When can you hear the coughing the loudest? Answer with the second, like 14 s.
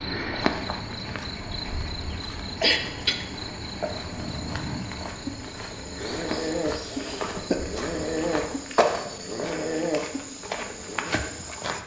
3 s.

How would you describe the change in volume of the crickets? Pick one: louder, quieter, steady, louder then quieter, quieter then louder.
quieter.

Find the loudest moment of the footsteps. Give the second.
9 s.